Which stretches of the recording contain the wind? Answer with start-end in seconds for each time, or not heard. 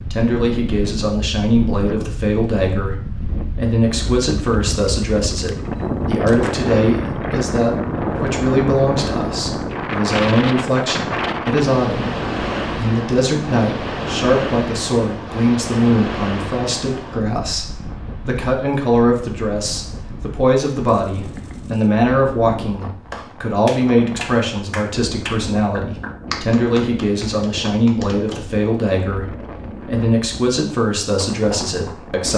0.0-32.3.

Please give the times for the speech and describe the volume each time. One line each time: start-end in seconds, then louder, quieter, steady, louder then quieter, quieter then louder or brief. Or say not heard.
0.1-32.3 steady.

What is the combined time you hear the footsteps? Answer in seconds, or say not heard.
not heard.